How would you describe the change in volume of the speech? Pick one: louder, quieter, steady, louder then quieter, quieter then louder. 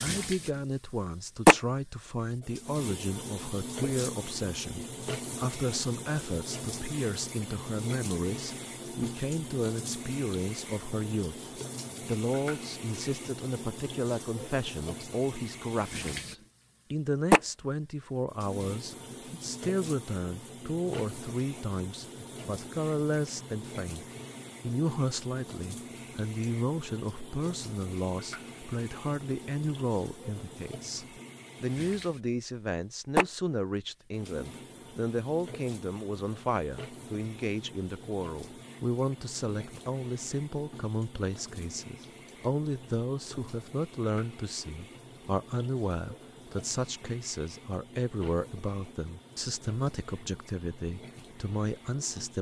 steady.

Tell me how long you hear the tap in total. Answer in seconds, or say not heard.
52 s.